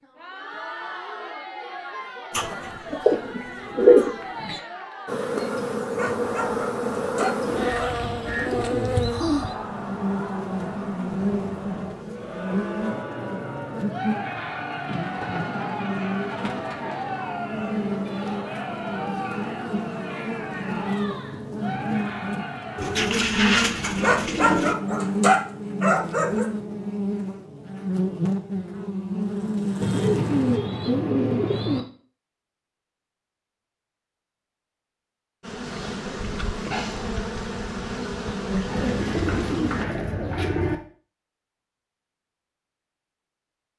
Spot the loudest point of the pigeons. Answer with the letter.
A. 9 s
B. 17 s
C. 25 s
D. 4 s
D.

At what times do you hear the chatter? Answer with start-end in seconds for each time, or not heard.
0.0-23.1.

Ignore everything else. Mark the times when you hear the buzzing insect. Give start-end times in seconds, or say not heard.
5.0-30.6, 35.4-39.9.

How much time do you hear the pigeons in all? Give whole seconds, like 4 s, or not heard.
13 s.